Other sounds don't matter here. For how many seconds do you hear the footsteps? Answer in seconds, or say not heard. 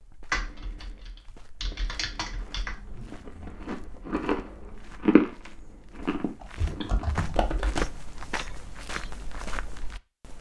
10 s.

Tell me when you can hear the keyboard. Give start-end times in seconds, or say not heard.
0.3-2.8, 6.4-7.9.